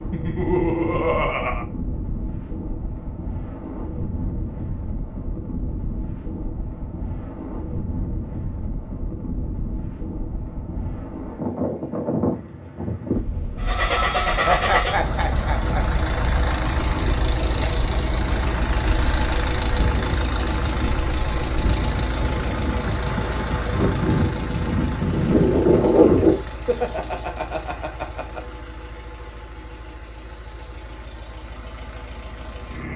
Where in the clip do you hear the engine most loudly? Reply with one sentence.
The loudest moment of the engine is at 14 seconds.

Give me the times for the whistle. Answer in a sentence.
The whistle can't be heard in this clip.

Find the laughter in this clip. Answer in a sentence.
You can hear the laughter from 0.1 to 1.6 s, from 14.4 to 15.8 s and from 26.4 to 28.4 s.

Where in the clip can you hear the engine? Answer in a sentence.
The engine can be heard from 13.6 to 32.9 s.